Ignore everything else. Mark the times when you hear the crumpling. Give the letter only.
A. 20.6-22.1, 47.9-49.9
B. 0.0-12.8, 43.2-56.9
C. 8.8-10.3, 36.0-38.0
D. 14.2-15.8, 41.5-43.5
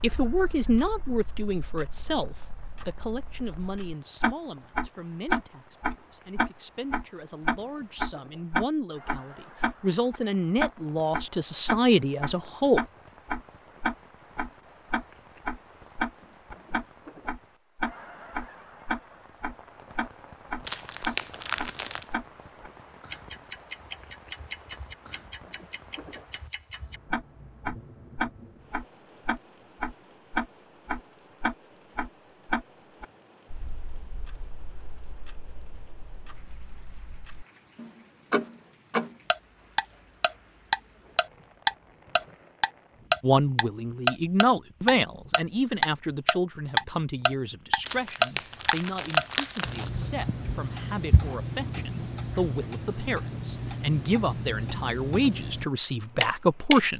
A.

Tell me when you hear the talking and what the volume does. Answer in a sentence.
The talking can be heard from 0.0 to 12.8 s, getting quieter then louder; and from 43.2 to 56.9 s, getting quieter then louder.